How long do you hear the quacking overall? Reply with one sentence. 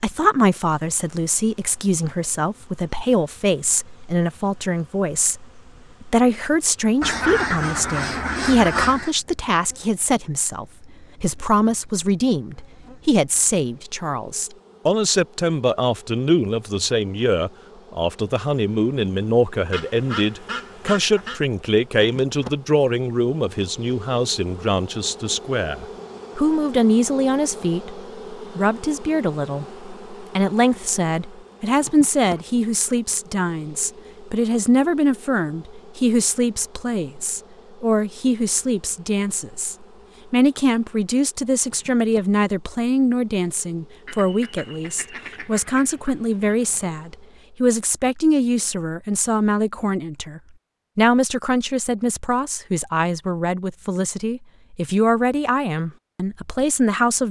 You can hear the quacking for 7 seconds altogether.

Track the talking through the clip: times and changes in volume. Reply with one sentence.
The talking can be heard from 0.0 to 57.2 s, at a steady volume.